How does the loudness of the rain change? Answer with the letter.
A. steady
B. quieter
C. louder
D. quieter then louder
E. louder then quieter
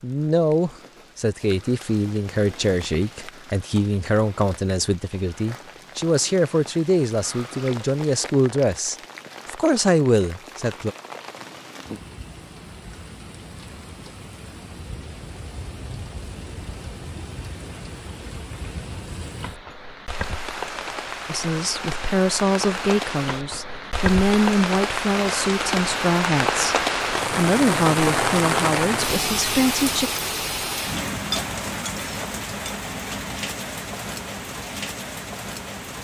C.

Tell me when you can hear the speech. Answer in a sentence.
You can hear the speech from 0.0 to 10.9 s and from 21.2 to 30.1 s.